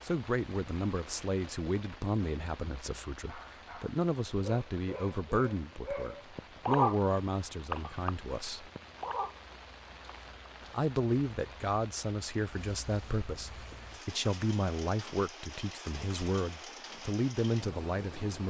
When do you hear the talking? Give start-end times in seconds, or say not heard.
0.0-8.7, 10.7-18.4.